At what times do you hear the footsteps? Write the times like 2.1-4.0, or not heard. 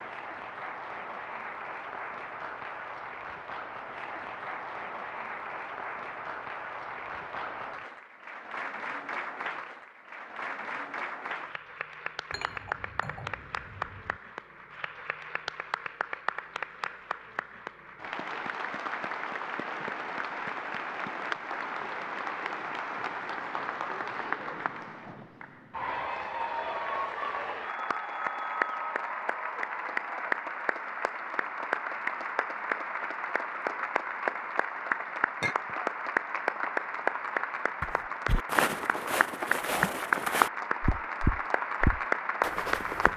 37.8-43.1.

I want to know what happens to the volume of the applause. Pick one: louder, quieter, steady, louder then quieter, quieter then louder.
louder.